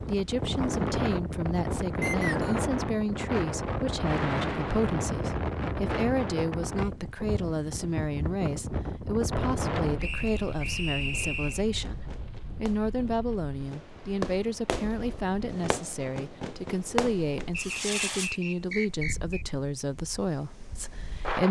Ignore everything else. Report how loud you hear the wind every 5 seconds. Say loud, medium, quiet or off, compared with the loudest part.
loud, loud, quiet, quiet, medium.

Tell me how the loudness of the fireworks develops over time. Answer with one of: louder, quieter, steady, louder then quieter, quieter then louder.
louder.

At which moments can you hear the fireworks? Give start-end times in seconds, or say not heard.
11.8-18.3.